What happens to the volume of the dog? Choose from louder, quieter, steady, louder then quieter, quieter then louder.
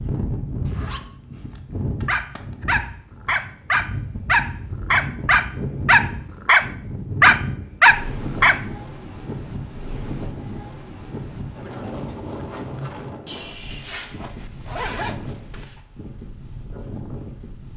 louder.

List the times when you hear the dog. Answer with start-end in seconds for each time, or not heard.
2.0-8.6.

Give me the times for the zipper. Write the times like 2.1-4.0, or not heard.
0.7-2.6, 13.2-15.8.